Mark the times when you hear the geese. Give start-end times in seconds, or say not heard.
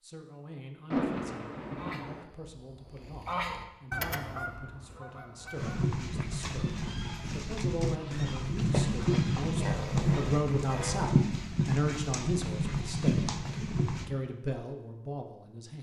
1.6-11.1.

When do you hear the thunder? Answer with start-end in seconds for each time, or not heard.
0.9-2.2.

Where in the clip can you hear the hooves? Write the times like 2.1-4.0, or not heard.
5.5-14.1.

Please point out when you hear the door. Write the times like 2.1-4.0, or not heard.
not heard.